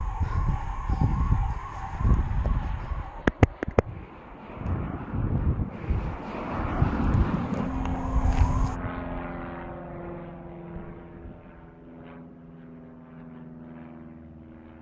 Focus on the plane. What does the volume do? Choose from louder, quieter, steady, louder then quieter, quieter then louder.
louder then quieter.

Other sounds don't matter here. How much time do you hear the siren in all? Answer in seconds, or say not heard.
9 s.